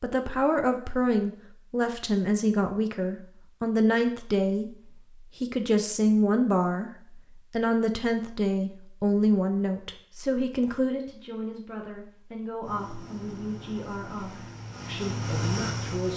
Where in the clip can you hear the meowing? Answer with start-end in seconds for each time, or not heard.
not heard.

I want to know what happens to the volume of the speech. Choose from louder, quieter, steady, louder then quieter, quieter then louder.
quieter.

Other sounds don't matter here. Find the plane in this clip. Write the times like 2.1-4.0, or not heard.
12.6-16.1.